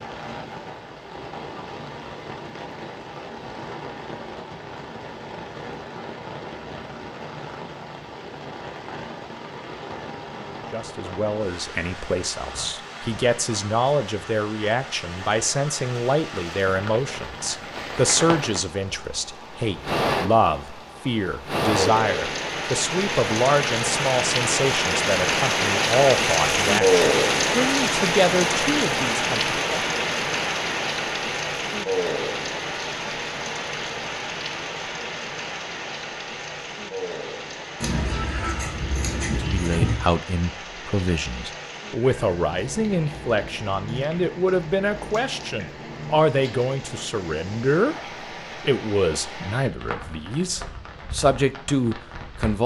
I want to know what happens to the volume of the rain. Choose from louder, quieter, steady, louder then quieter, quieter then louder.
louder then quieter.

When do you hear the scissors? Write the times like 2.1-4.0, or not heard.
37.8-40.0.